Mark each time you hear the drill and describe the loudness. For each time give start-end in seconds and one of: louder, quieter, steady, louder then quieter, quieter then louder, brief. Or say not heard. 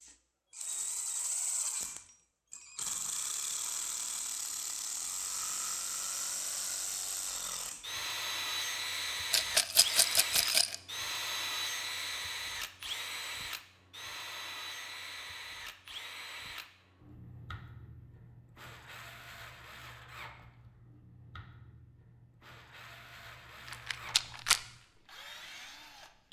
0.0-26.2 quieter.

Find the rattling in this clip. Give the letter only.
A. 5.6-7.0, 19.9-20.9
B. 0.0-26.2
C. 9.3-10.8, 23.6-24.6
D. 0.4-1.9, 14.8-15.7
C.